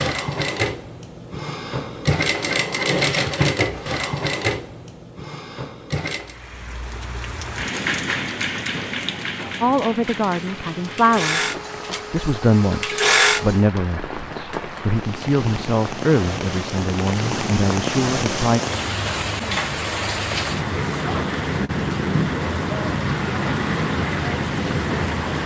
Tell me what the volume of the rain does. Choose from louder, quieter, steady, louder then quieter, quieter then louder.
quieter then louder.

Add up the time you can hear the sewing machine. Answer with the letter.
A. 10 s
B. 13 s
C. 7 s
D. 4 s
A.